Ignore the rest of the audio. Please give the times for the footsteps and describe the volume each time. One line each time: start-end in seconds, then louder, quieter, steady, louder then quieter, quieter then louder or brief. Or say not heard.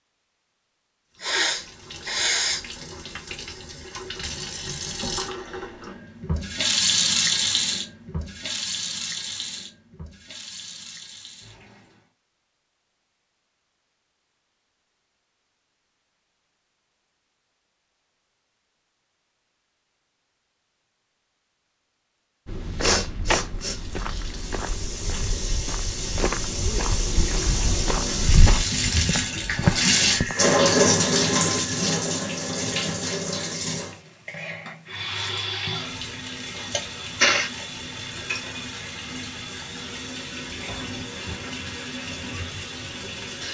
22.4-30.4 quieter then louder.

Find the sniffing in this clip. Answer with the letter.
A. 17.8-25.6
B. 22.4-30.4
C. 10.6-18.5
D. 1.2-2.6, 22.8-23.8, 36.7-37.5
D.